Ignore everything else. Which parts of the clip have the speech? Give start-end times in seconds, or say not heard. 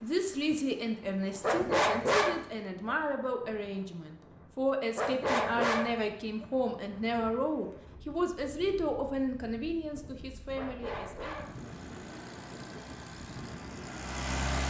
0.0-11.4.